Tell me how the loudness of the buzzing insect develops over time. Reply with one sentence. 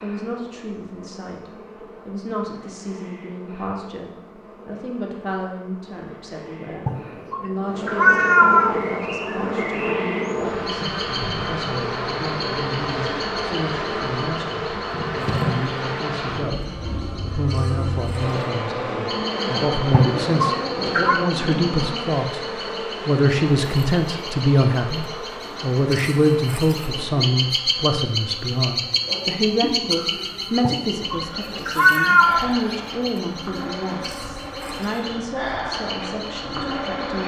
The loudness of the buzzing insect goes up, then down.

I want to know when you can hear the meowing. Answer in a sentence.
The meowing can be heard from 6.8 to 8.8 s, from 19.9 to 21.2 s and from 30.6 to 32.4 s.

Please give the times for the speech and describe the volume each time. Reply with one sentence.
You can hear the speech from 0.0 to 37.2 s, getting louder then quieter.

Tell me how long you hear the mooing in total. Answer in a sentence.
You can't hear the mooing here.